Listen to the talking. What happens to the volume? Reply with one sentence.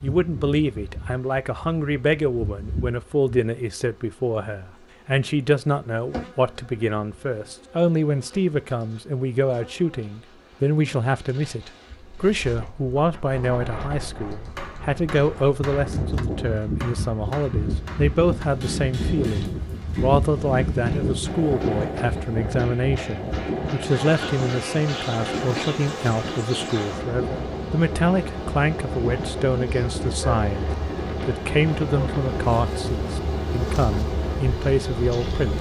The volume of the talking stays about the same.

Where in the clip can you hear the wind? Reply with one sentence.
You can hear the wind from 11.9 to 35.5 s.